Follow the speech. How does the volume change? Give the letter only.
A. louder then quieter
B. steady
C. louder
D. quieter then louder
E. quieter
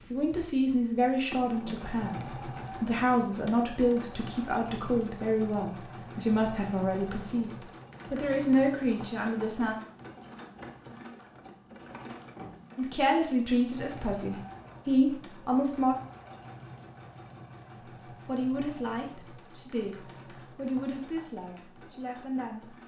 E.